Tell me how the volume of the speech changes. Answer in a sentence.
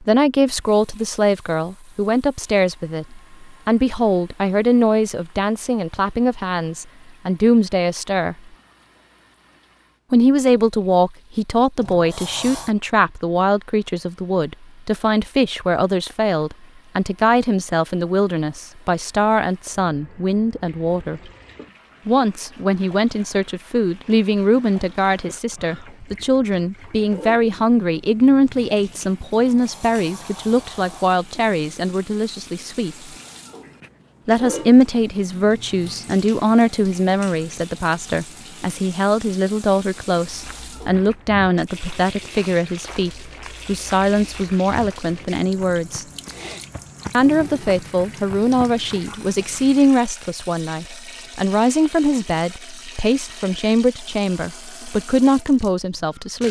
The loudness of the speech stays about the same.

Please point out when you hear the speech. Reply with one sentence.
The speech can be heard from 0.0 to 8.3 s, from 10.1 to 21.2 s, from 22.1 to 33.0 s, from 34.2 to 46.0 s and from 47.1 to 56.4 s.